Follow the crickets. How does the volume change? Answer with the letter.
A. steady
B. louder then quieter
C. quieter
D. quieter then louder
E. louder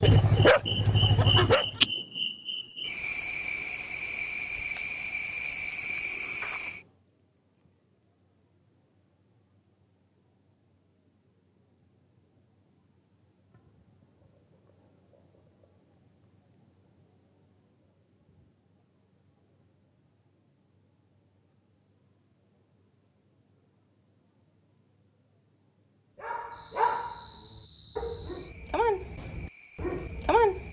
C.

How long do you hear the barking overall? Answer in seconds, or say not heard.
6 s.